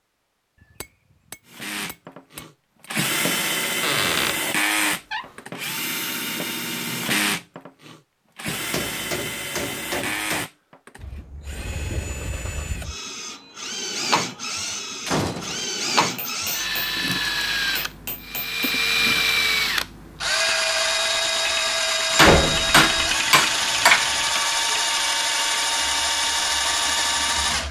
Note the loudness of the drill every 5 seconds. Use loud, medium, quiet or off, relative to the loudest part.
loud, medium, medium, loud, loud, loud.